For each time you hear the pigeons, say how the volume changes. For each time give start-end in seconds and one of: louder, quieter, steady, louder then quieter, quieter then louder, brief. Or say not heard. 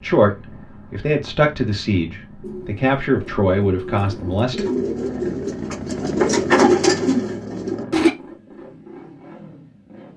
2.4-8.1 louder.